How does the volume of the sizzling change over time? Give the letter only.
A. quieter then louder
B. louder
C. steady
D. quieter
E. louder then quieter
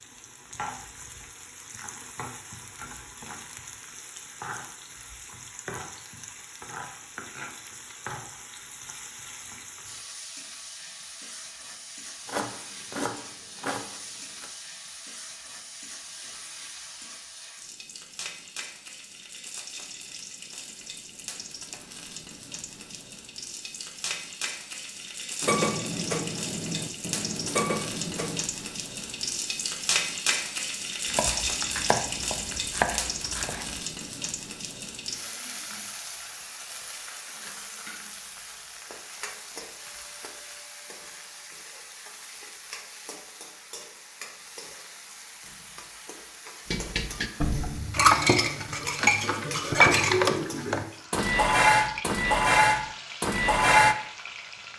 E.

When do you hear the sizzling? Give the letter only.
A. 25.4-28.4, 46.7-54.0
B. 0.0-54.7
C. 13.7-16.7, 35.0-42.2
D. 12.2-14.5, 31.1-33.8
B.